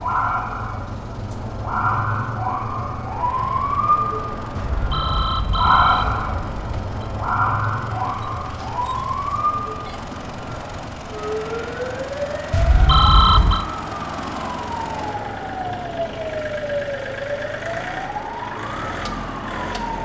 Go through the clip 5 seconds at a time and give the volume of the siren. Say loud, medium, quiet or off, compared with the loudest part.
loud, loud, medium, medium.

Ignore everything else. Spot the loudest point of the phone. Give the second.
13 s.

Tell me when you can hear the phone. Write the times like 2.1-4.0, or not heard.
4.5-7.0, 12.5-13.7.